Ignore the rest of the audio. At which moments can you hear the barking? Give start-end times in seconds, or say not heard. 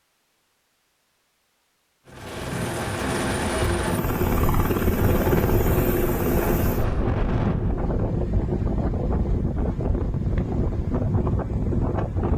not heard.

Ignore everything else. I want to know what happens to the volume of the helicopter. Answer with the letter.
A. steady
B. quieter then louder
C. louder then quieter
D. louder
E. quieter
A.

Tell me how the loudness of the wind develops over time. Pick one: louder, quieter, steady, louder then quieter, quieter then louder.
steady.